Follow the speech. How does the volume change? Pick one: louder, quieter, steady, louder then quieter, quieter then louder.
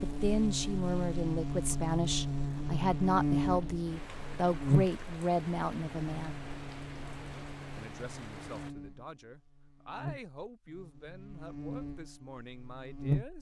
quieter.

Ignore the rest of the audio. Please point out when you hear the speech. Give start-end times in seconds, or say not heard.
0.0-6.3, 7.8-13.3.